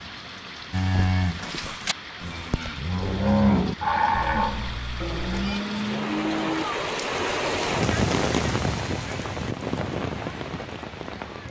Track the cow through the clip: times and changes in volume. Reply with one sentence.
The cow can be heard from 0.7 to 6.7 s, getting louder then quieter.